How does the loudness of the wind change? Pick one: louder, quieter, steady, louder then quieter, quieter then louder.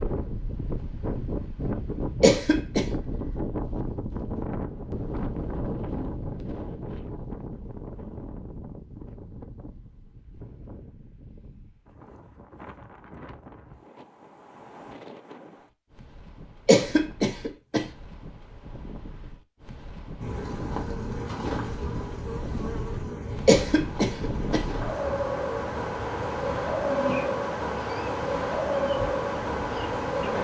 quieter then louder.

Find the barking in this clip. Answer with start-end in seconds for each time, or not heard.
not heard.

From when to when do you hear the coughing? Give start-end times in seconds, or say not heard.
2.2-2.9, 16.6-17.9, 23.4-24.6.